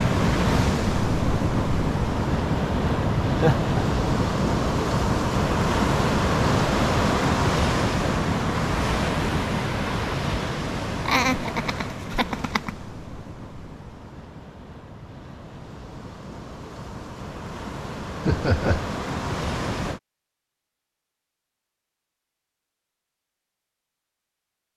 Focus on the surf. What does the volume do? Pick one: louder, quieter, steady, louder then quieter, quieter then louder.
quieter then louder.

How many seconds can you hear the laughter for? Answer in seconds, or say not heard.
3 s.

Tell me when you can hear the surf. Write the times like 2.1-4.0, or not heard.
0.0-20.0.